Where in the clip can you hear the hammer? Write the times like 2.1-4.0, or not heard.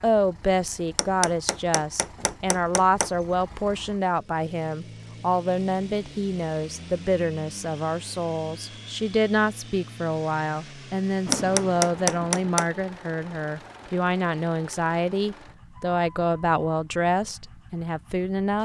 0.9-3.1, 11.3-12.7.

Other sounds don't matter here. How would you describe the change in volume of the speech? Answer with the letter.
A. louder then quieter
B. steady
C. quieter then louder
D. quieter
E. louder
B.